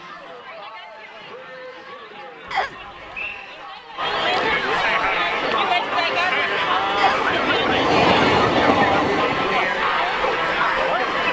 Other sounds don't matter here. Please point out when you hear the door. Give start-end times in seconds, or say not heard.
not heard.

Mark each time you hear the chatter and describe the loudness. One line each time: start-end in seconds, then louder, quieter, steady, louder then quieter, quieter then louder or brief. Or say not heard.
0.0-11.2 louder.